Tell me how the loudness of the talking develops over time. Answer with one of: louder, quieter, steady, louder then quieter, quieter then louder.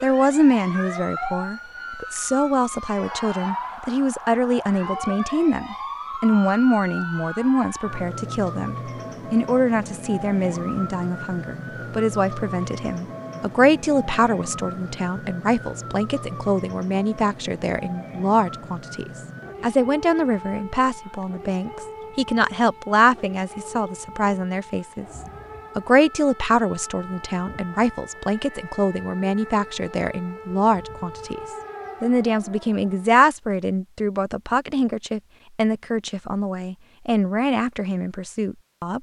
steady.